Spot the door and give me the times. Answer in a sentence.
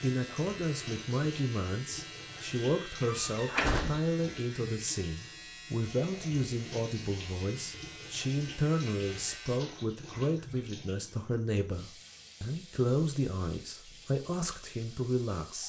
The door can be heard from 3.0 to 4.0 s.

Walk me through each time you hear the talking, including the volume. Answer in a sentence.
The talking can be heard from 0.0 to 15.6 s, at a steady volume.